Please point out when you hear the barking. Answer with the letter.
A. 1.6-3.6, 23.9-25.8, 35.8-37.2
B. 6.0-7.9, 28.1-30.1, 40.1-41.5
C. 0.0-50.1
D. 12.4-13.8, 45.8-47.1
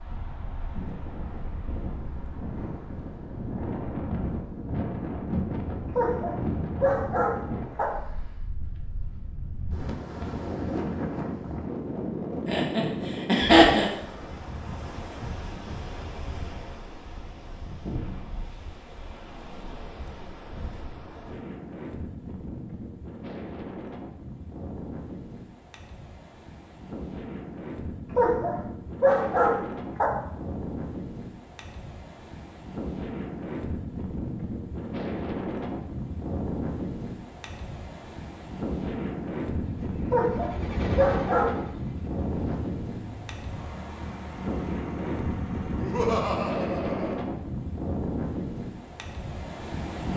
B.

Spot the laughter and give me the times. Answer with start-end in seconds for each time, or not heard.
12.4-13.8, 45.8-47.1.